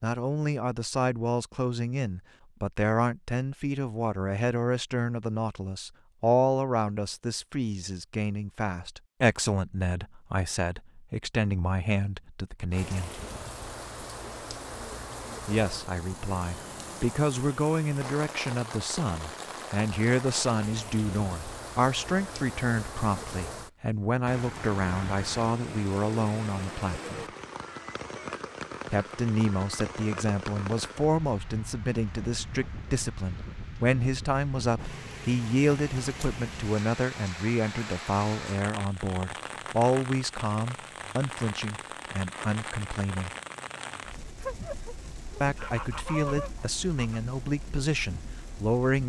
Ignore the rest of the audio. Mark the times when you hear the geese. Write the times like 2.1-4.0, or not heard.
44.4-47.2.